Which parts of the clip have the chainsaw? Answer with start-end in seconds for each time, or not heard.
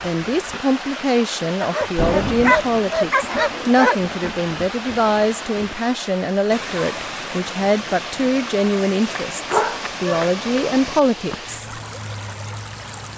not heard.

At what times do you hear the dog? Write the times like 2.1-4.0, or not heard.
1.6-4.3, 9.3-10.7.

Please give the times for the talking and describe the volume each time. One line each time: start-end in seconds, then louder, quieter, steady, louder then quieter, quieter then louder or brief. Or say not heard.
0.0-11.7 steady.